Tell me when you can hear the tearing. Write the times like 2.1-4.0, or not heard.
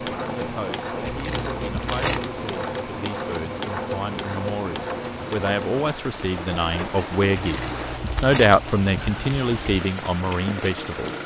1.1-2.3, 7.3-9.3.